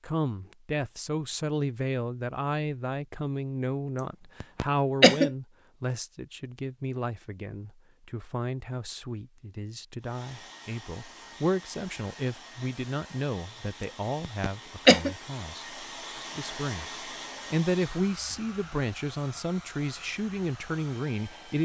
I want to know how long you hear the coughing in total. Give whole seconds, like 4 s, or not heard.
2 s.